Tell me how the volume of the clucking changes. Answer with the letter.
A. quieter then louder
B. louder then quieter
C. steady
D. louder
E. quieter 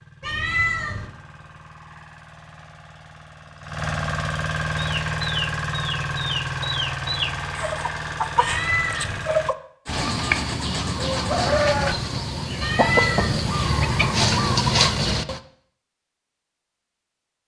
D.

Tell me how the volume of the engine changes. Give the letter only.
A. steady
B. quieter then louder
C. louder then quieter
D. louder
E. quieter
C.